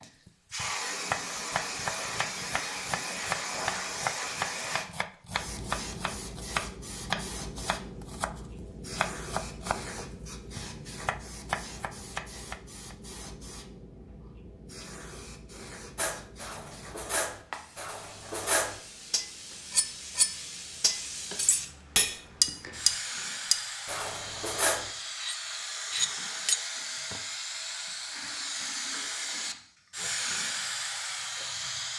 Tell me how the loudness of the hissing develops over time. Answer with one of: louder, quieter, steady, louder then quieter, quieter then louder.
quieter then louder.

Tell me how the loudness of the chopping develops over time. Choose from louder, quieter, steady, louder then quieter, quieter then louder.
steady.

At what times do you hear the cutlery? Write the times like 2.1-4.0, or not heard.
15.9-27.2.